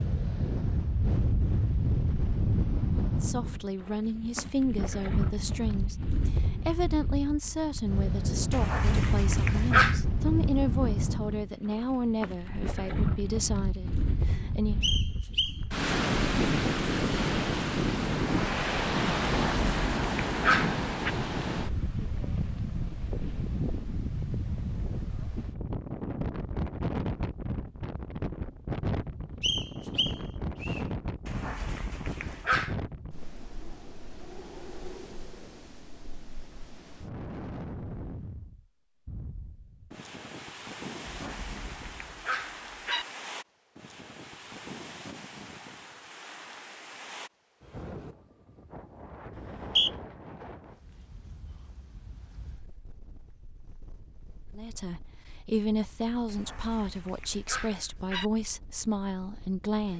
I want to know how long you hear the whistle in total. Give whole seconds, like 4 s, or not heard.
3 s.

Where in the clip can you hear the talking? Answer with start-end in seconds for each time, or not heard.
3.2-14.8, 54.5-59.9.